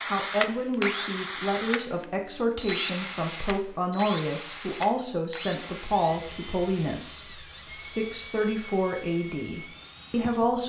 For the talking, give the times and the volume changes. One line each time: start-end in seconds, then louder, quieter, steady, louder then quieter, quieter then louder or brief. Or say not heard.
0.1-10.6 steady.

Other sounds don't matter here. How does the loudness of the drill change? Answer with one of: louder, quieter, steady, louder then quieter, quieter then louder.
quieter.